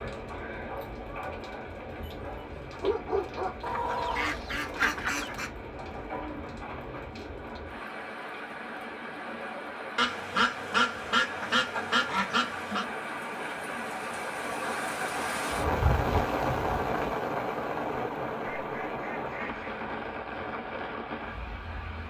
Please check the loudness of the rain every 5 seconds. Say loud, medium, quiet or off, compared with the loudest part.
medium, medium, medium, loud, medium.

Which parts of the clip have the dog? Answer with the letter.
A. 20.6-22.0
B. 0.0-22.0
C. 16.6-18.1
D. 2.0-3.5
D.